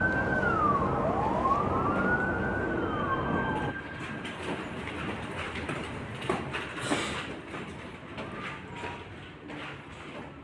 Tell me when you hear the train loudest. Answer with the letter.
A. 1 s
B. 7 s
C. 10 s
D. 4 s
B.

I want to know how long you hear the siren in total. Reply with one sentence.
The siren can be heard for 4 seconds in total.